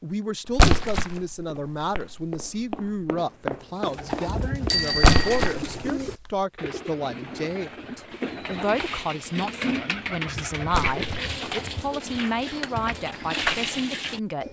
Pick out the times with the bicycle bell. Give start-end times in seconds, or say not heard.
4.7-5.5.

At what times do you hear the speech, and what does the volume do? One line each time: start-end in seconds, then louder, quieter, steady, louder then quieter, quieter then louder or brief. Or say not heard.
0.0-14.4 steady.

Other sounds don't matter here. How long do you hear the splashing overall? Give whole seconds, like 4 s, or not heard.
2 s.